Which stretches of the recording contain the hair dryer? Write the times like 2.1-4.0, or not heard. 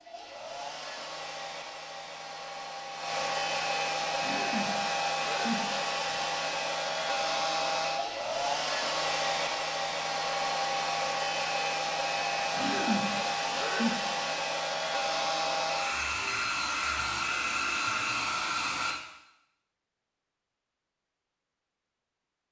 0.0-18.9.